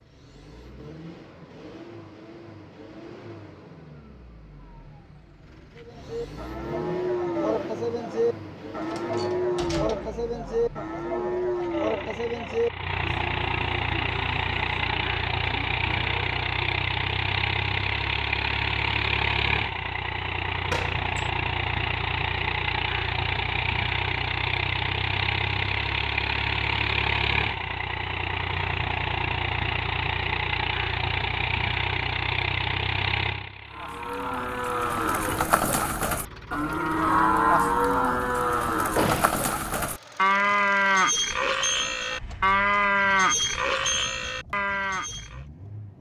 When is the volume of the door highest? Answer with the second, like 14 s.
39 s.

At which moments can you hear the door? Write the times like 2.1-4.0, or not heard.
8.8-10.2, 20.6-21.3, 39.0-39.4.